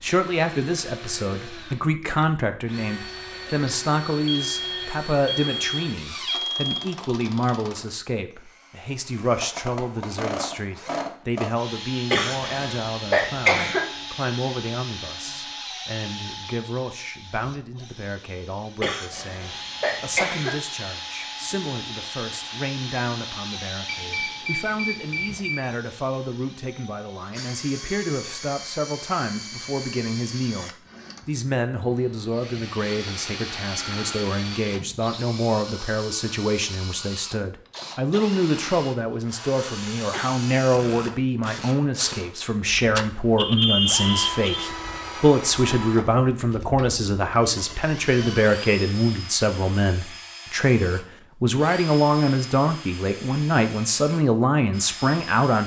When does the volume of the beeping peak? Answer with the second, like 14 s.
44 s.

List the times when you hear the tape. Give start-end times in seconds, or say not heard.
not heard.